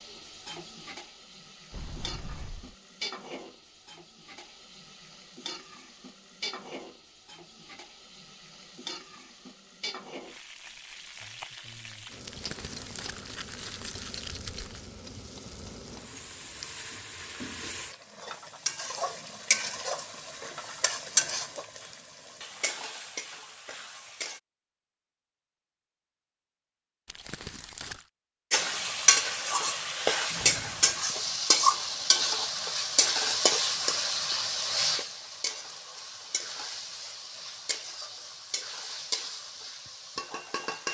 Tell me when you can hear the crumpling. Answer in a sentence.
You can hear the crumpling from 12.2 to 14.9 s and from 27.1 to 28.1 s.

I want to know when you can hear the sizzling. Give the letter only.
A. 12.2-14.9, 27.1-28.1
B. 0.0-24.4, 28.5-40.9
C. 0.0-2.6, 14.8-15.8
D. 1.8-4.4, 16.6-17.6
B.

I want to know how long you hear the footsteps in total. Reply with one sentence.
The footsteps can't be heard in this clip.